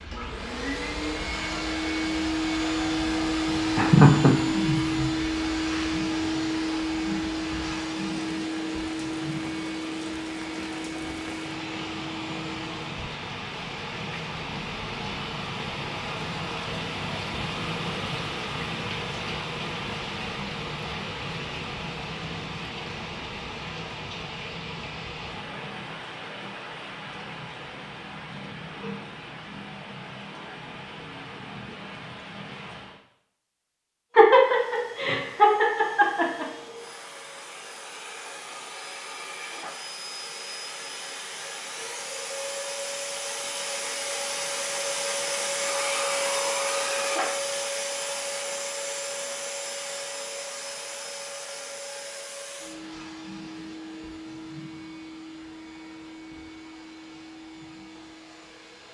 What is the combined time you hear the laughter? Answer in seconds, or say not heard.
3 s.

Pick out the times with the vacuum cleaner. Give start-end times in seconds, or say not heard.
0.0-12.9, 34.2-58.9.